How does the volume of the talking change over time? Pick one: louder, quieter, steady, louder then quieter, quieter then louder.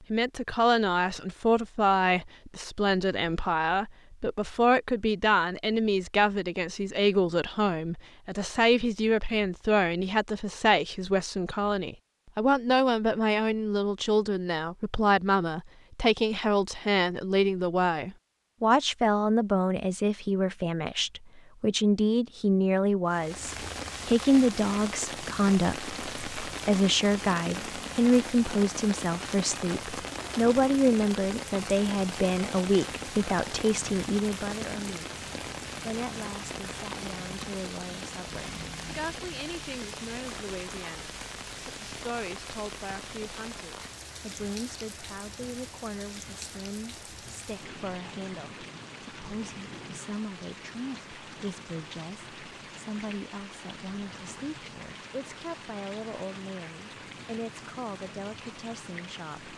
quieter.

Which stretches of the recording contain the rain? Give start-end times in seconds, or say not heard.
23.1-59.5.